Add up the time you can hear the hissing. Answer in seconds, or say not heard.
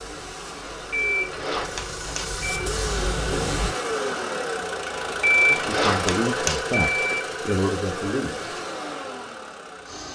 4 s.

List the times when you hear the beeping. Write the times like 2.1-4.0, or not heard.
0.9-2.5, 5.3-7.2.